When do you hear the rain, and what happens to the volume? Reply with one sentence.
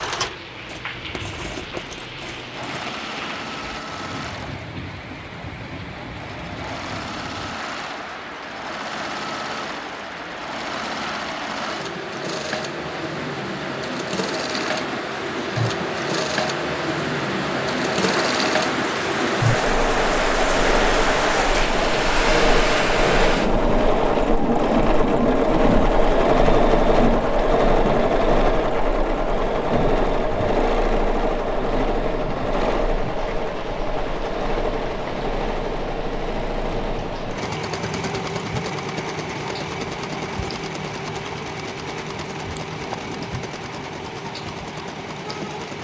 The rain can be heard from 0.0 to 45.8 s, getting louder then quieter.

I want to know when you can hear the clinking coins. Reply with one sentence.
The clinking coins can be heard from 0.7 to 3.0 s.